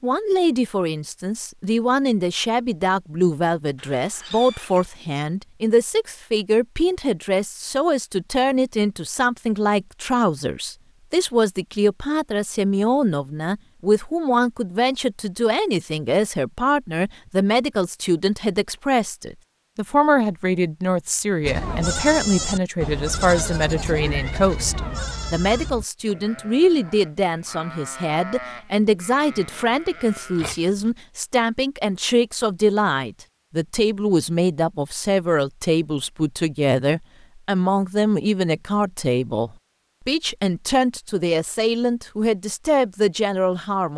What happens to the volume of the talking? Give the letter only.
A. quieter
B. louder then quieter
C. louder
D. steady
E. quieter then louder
D.